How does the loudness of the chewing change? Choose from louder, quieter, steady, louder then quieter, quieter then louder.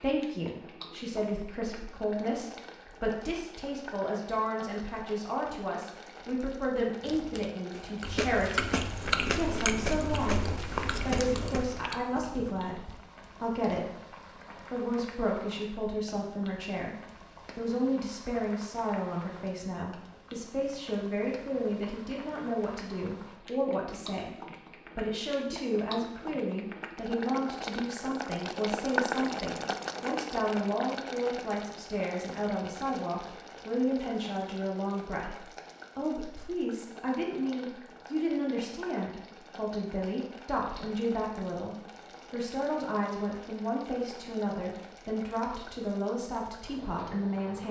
louder then quieter.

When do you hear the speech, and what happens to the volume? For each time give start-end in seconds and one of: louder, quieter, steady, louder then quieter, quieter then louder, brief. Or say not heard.
0.0-16.9 steady
17.6-47.6 steady.